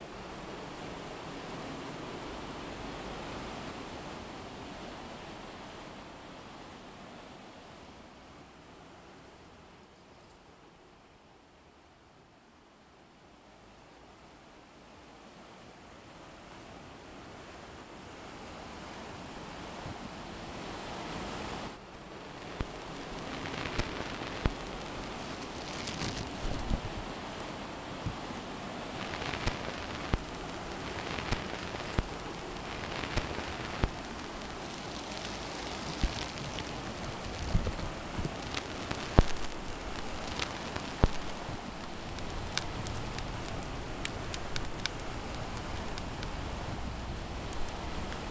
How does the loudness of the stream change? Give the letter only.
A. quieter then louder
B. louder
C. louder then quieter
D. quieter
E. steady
A.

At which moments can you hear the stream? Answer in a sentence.
The stream can be heard from 0.0 to 48.2 s.